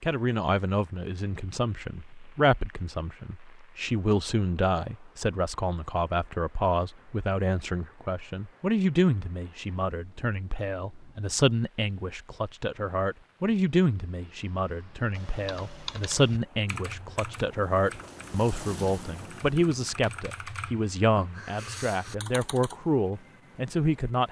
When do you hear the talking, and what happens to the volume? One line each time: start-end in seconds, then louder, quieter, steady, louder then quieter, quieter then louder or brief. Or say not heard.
0.0-24.2 steady.